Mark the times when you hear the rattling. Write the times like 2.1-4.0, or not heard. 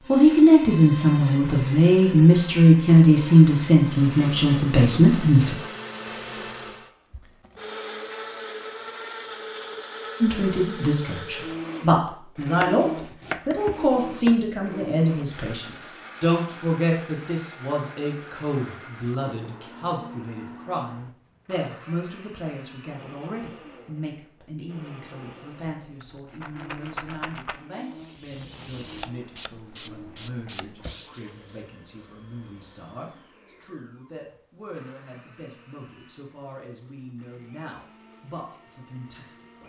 25.8-27.6.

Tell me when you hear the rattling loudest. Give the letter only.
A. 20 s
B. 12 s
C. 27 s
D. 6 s
C.